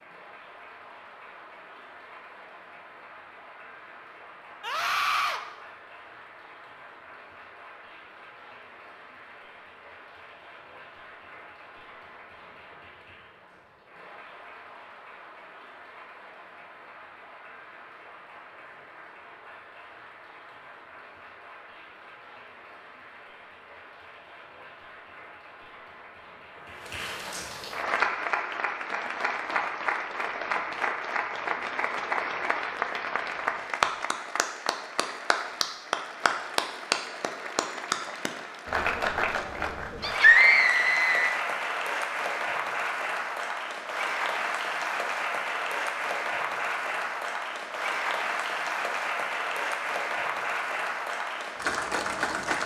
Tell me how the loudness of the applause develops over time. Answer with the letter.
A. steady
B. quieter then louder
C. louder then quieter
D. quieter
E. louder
E.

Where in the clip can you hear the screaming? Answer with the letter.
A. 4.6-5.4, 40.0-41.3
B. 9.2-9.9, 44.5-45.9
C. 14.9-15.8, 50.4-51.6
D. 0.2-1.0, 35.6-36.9
A.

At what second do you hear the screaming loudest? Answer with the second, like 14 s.
40 s.